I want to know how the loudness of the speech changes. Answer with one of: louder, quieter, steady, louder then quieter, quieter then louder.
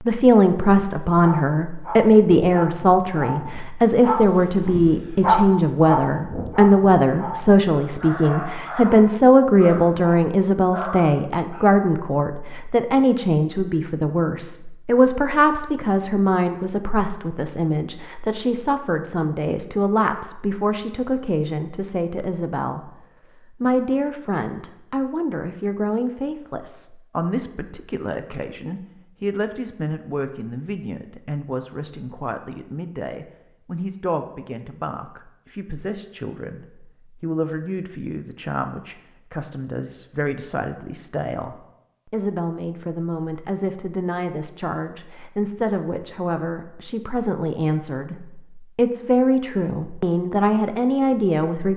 quieter then louder.